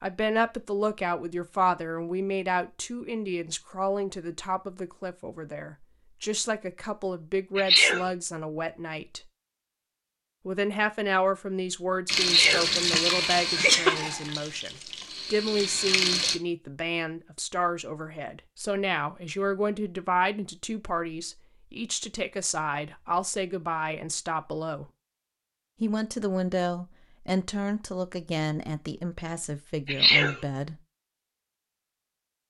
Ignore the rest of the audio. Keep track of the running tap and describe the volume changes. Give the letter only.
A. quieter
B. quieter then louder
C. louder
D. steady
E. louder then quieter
B.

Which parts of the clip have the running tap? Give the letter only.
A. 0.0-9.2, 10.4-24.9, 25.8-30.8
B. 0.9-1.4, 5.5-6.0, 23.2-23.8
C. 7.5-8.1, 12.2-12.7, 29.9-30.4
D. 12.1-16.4
D.